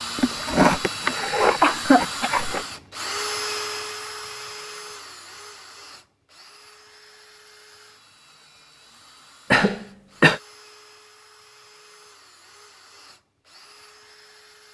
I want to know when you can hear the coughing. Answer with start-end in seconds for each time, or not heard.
0.1-2.6, 9.5-10.4.